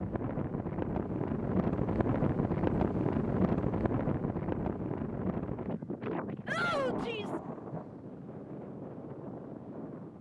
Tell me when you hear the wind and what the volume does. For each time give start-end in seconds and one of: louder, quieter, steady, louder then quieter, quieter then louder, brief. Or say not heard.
0.0-10.1 quieter.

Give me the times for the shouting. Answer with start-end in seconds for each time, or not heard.
6.5-7.4.